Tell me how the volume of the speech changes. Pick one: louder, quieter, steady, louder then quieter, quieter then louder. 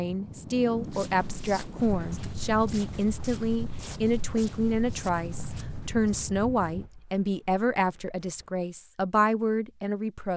steady.